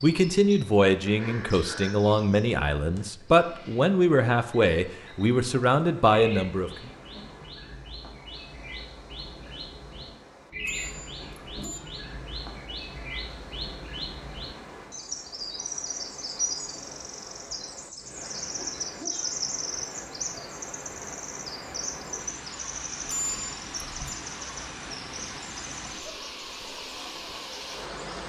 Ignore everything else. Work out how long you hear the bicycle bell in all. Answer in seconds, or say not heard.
2 s.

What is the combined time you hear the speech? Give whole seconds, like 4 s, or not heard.
7 s.